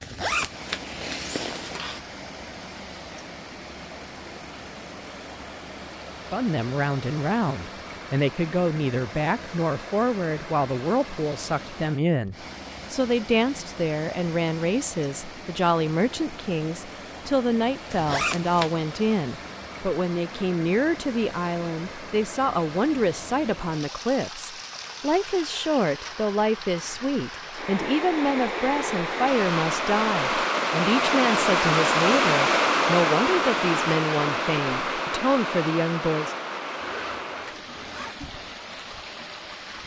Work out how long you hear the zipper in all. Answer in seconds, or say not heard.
4 s.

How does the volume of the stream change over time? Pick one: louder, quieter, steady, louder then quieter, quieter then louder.
louder.